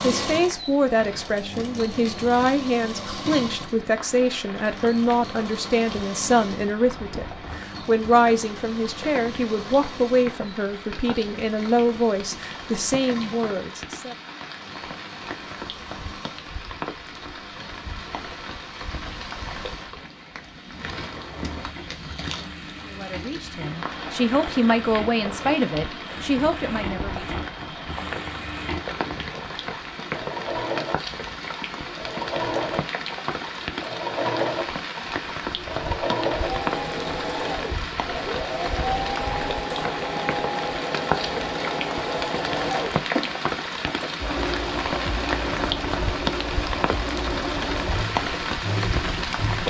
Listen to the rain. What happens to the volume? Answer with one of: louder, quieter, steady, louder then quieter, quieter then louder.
louder.